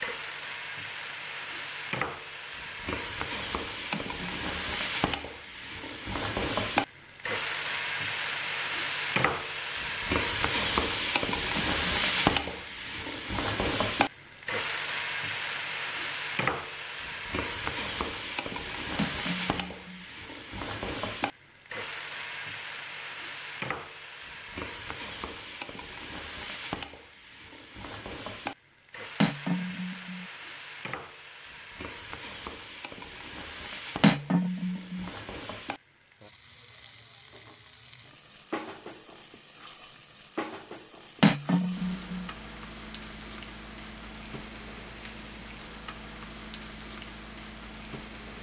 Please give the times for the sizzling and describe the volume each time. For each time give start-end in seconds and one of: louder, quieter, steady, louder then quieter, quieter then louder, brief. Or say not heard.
0.0-48.3 quieter.